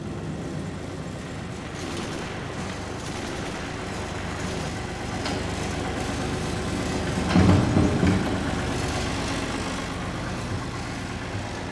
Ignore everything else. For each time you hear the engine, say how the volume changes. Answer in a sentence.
The engine can be heard from 0.0 to 11.6 s, getting louder then quieter.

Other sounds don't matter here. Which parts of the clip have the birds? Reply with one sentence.
The birds can be heard from 0.0 to 8.8 s.